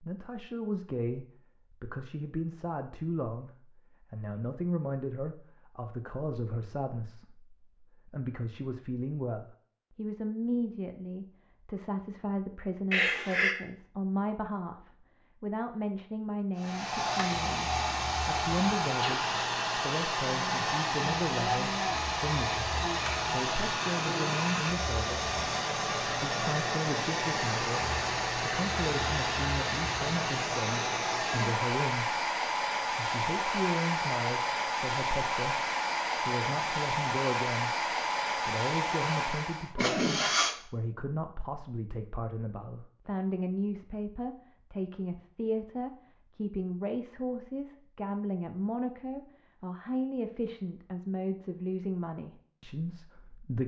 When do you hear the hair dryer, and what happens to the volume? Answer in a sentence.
The hair dryer can be heard from 16.6 to 39.8 s, at a steady volume.